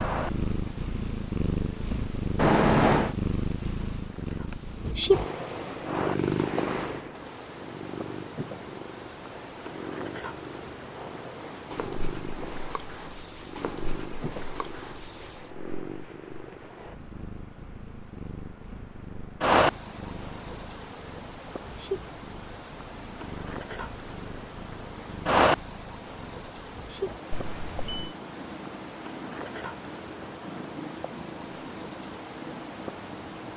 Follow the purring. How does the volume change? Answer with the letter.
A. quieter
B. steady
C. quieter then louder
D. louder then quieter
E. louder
A.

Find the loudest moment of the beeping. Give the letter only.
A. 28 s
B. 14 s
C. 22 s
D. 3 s
D.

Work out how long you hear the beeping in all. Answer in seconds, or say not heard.
2 s.